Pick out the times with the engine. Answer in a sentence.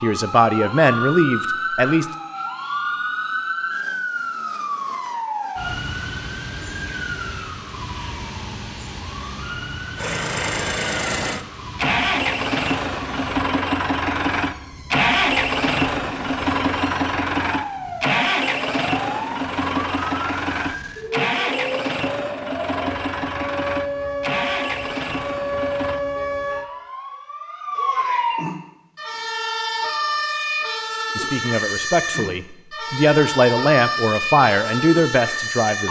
You can hear the engine from 9.9 to 26.0 s.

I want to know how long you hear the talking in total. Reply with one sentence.
The talking can be heard for 7 seconds in total.